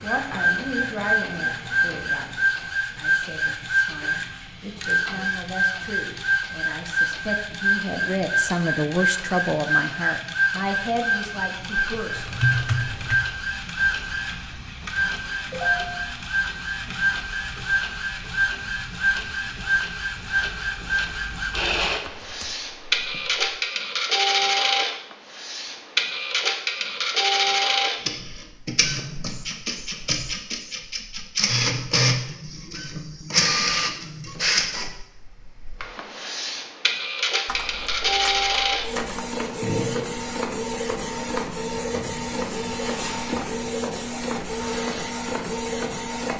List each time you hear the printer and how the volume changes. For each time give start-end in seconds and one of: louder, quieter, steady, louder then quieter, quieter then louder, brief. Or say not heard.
0.0-46.3 steady.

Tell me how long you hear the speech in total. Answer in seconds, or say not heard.
12 s.